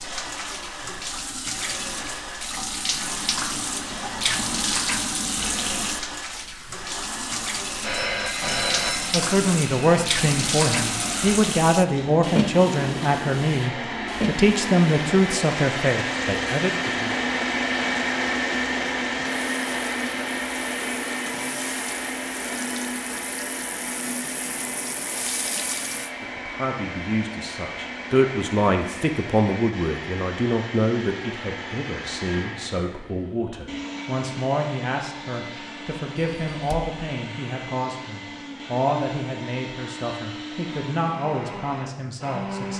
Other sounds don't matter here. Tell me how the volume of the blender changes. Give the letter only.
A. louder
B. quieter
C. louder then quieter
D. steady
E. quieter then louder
C.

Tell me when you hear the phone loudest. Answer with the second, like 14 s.
9 s.